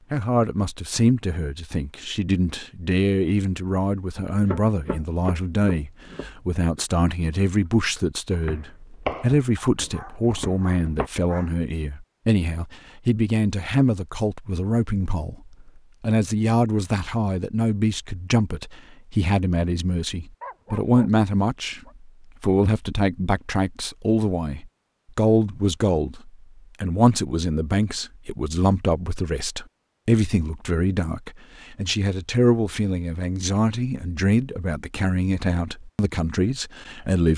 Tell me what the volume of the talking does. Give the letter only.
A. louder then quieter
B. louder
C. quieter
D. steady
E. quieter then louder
D.